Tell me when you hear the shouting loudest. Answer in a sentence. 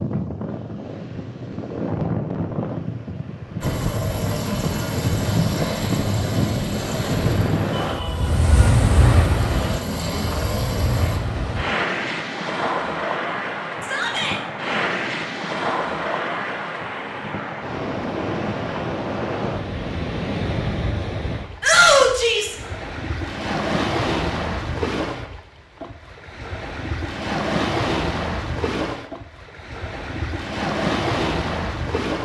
The loudest moment of the shouting is at 22 seconds.